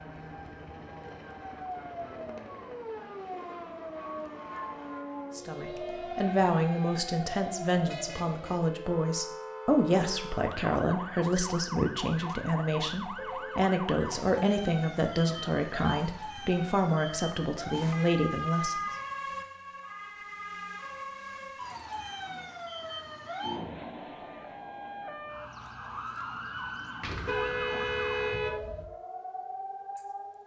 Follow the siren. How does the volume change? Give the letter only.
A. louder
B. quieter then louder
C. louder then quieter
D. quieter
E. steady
E.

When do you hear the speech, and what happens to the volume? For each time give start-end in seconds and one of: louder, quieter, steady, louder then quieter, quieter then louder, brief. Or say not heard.
5.3-18.8 steady.